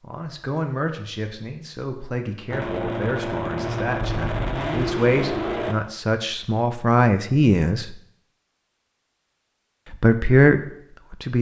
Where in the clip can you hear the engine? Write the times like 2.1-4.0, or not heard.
2.5-5.8.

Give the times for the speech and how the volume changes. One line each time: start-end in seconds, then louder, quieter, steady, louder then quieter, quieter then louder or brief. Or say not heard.
0.0-8.0 louder
9.9-11.3 brief.